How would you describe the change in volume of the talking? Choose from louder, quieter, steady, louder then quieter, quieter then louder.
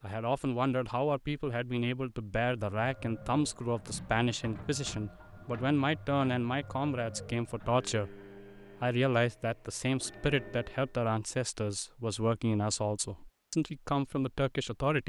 steady.